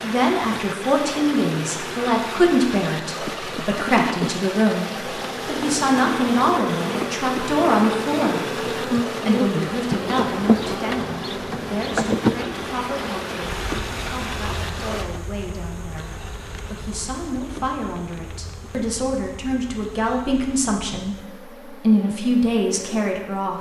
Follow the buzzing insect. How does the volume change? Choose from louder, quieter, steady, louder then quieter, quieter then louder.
louder then quieter.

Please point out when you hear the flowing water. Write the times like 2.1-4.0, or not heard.
0.0-15.1.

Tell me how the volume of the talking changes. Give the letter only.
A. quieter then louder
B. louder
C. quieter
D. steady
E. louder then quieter
A.